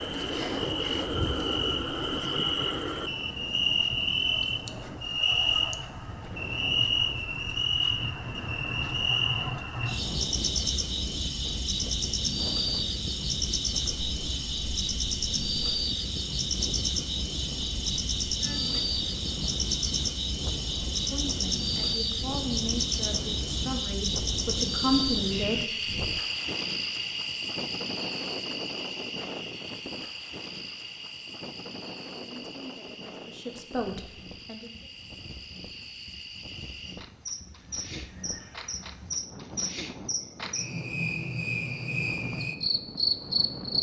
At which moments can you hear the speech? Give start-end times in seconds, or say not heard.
21.0-25.6, 32.1-34.9.